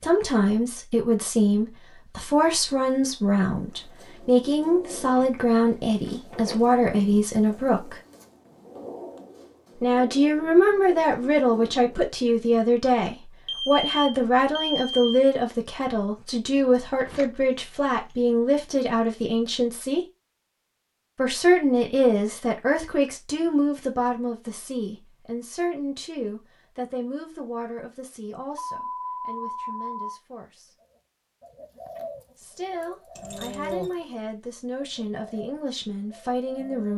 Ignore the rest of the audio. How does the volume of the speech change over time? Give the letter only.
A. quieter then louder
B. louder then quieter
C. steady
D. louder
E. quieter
E.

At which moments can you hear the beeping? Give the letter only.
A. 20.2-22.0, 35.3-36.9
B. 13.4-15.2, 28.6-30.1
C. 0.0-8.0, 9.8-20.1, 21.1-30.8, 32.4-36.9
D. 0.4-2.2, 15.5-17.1
B.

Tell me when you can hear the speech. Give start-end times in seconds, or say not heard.
0.0-8.0, 9.8-20.1, 21.1-30.8, 32.4-36.9.